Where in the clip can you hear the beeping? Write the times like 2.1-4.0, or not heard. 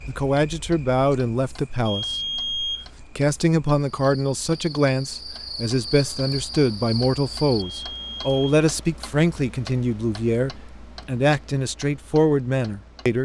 1.9-2.9, 7.5-8.6.